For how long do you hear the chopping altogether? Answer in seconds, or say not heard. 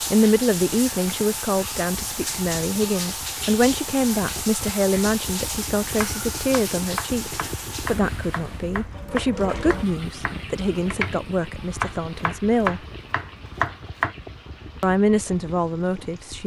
8 s.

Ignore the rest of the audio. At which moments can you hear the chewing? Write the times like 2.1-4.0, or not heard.
not heard.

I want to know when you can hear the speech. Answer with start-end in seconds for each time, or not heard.
0.1-12.8, 14.8-16.4.